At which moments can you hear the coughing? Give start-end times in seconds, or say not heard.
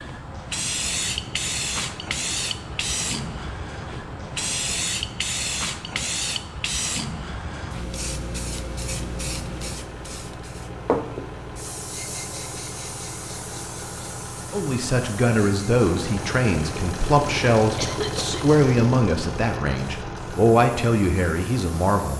17.8-18.6.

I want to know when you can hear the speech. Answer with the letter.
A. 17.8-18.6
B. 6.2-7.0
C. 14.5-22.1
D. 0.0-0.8
C.